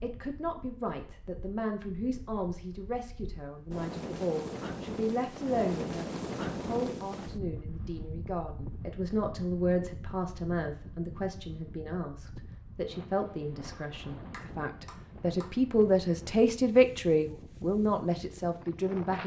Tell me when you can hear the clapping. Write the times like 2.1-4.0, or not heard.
14.3-15.6.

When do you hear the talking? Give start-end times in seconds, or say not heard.
0.0-19.2.